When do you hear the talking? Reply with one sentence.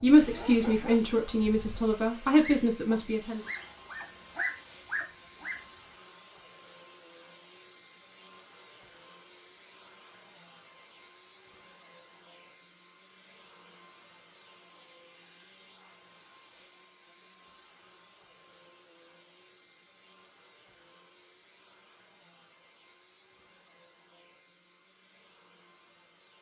The talking can be heard from 0.0 to 3.4 s.